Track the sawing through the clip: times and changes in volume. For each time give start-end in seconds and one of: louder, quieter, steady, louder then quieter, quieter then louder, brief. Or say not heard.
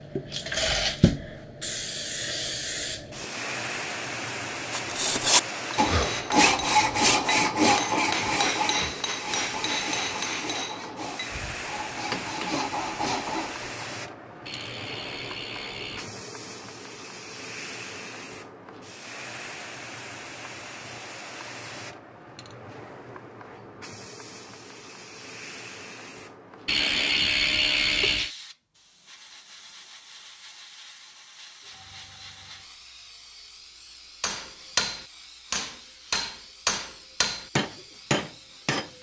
4.7-13.8 quieter then louder.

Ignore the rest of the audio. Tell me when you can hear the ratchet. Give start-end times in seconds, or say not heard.
14.4-16.1, 26.6-28.4.